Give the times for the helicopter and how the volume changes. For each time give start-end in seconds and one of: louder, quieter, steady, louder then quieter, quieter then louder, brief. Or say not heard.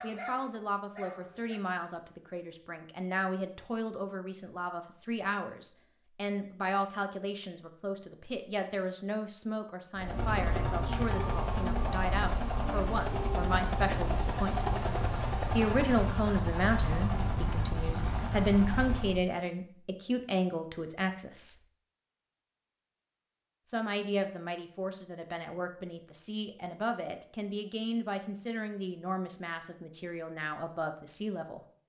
9.9-19.2 steady.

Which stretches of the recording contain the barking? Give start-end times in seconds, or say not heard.
0.0-1.6.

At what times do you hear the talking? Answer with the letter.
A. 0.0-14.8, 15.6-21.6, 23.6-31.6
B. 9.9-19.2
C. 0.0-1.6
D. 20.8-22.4
A.